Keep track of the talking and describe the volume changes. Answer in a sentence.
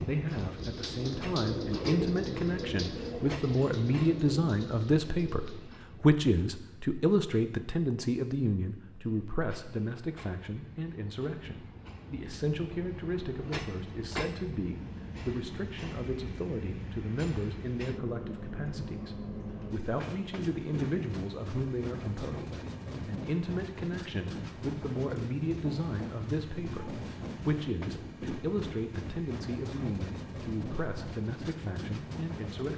The loudness of the talking goes down.